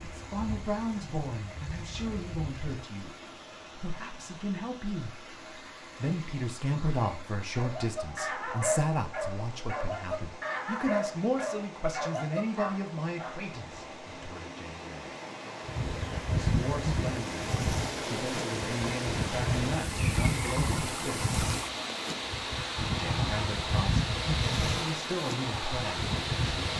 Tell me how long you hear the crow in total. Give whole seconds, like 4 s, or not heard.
not heard.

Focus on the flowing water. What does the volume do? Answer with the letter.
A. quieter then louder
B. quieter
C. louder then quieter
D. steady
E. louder
E.